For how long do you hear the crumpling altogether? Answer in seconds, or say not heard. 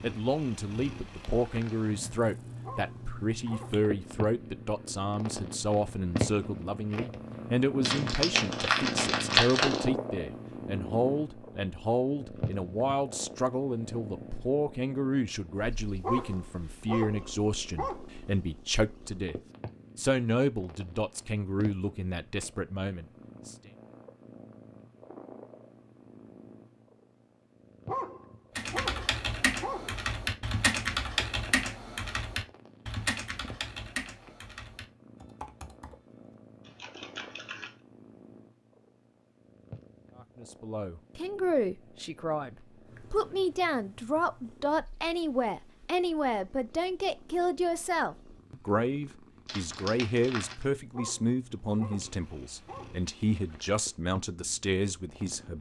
3 s.